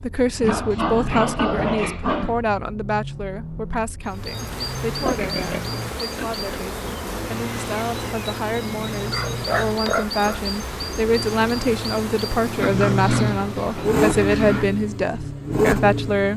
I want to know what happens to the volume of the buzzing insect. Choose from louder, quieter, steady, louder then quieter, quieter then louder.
steady.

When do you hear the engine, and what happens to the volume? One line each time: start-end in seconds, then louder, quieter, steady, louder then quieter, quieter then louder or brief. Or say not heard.
0.0-16.3 louder.